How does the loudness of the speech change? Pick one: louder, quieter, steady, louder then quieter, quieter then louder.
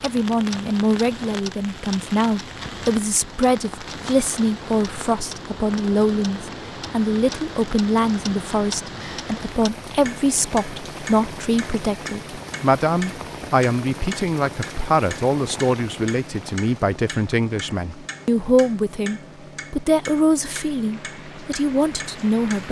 steady.